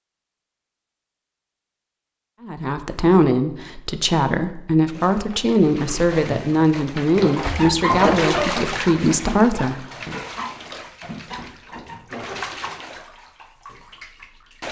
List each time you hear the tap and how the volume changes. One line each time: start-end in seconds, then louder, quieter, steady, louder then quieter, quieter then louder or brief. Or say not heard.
4.9-14.6 louder then quieter.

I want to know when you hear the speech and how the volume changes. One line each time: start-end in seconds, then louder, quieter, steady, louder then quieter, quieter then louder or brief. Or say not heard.
2.4-10.2 steady.